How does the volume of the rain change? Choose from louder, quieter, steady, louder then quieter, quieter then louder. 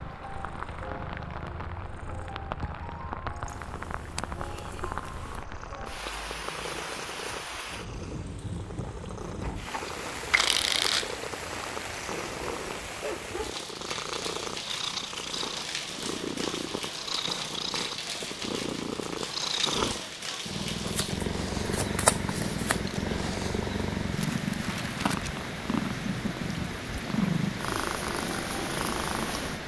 steady.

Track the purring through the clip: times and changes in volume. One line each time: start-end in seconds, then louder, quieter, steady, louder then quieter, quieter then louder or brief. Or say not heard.
0.0-29.6 louder.